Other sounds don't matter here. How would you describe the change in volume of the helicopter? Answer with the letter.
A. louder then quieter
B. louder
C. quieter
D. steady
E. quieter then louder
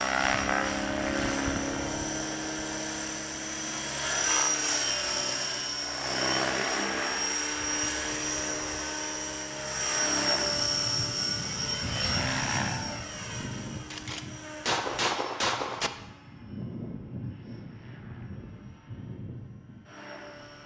C.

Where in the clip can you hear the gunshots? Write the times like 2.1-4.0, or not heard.
13.9-15.9.